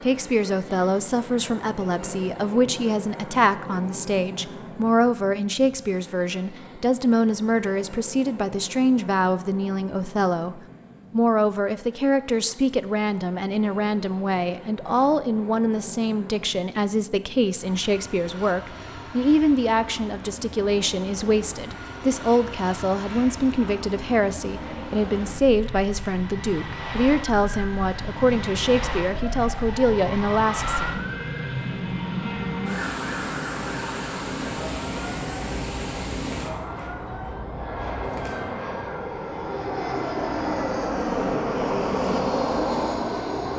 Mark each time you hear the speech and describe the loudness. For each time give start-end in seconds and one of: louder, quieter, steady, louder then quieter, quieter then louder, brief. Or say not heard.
0.0-30.9 steady.